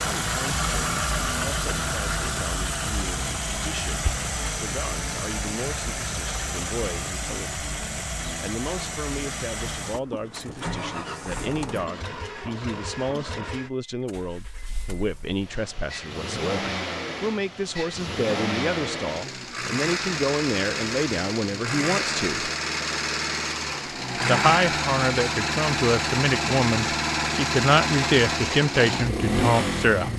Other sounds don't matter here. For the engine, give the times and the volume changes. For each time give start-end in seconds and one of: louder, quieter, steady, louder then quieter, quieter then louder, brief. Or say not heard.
0.0-30.1 quieter then louder.